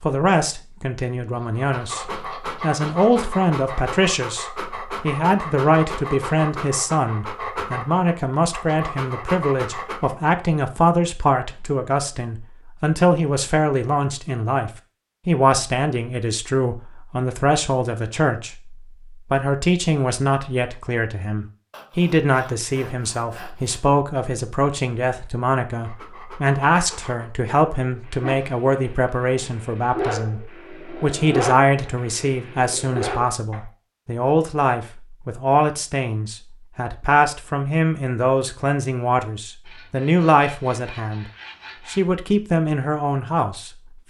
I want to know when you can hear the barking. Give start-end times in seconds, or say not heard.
1.5-10.2, 25.7-33.6.